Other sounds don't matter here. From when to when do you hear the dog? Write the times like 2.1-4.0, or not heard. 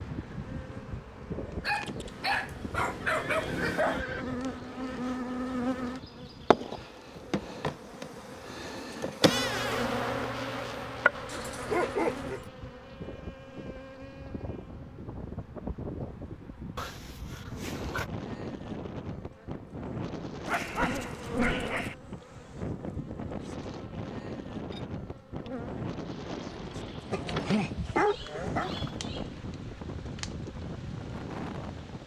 1.6-4.0, 11.2-12.4, 20.4-21.9, 27.1-28.8.